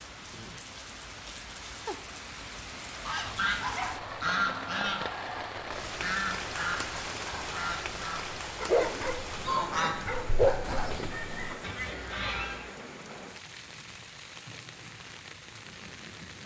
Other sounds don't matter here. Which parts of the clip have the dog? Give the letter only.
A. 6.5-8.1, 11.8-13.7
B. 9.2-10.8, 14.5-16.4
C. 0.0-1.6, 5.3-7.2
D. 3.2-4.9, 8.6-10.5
D.